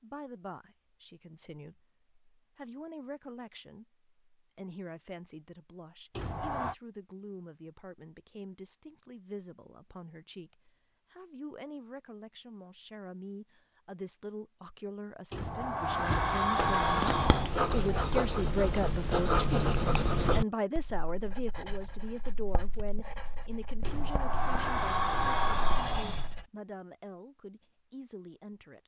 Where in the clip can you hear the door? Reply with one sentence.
You can hear the door from 6.1 to 6.8 s, from 15.3 to 17.6 s and from 23.8 to 26.4 s.